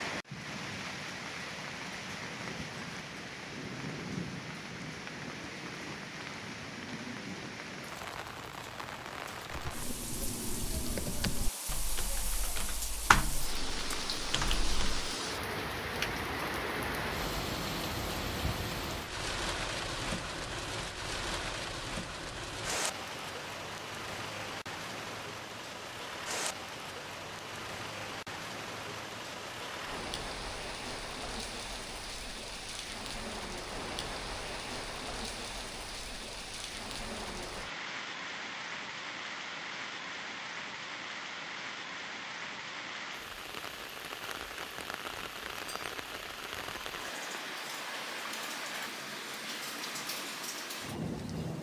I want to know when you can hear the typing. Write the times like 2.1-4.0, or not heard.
9.5-15.1.